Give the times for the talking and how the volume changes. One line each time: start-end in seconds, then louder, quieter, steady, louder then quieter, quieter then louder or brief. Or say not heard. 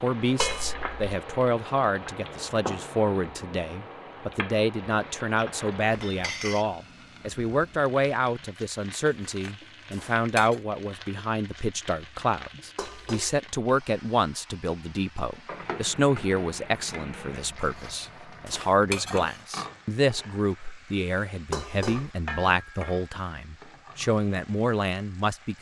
0.0-25.5 steady.